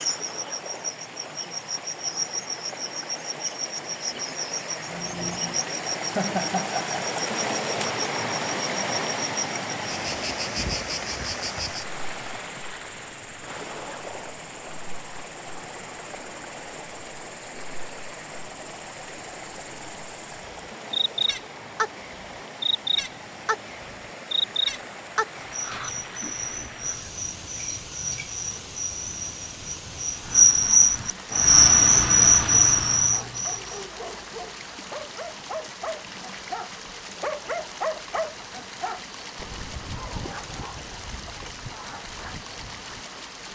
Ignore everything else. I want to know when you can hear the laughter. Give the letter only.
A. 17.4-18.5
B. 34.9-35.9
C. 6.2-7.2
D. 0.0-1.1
C.